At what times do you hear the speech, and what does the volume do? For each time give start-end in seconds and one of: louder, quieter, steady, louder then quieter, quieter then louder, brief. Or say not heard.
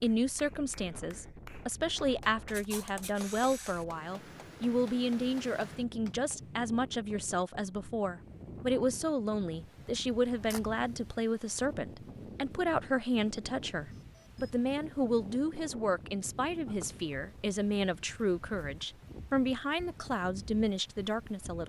0.0-21.6 steady.